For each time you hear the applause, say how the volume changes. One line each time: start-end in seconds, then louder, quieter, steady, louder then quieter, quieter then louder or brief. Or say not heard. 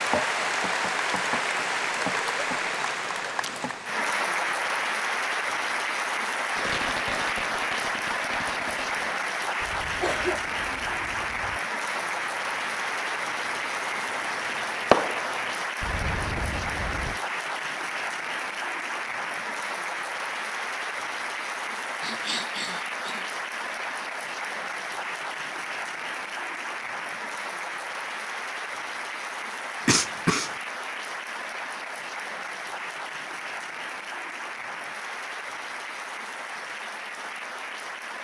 0.0-38.1 quieter.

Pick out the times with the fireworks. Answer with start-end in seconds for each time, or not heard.
6.5-17.2.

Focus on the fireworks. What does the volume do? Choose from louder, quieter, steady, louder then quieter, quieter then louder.
quieter then louder.